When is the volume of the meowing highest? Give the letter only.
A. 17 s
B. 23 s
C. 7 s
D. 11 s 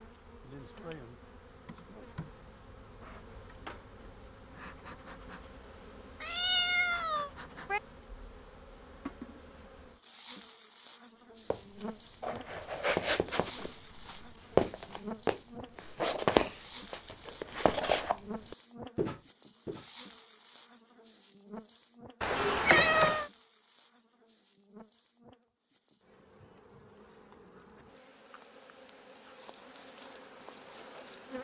B.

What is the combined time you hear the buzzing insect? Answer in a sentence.
The buzzing insect can be heard for 31 seconds in total.